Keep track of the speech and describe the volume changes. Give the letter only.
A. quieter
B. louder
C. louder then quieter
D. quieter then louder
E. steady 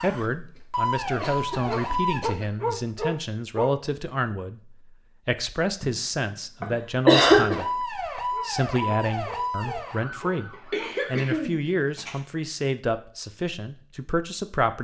E.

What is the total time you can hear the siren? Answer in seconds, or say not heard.
6 s.